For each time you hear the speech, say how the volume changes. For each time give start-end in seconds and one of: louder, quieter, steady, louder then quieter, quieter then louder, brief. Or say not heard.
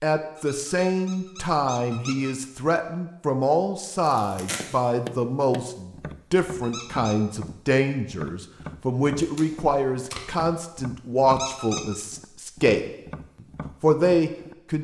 0.0-12.9 steady
13.8-14.7 brief.